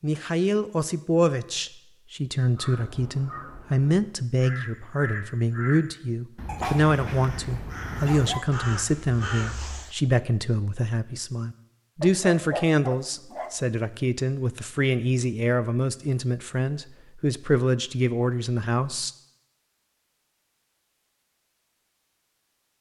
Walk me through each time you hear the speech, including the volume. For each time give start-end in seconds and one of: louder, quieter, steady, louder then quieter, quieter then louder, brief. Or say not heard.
0.0-19.1 steady.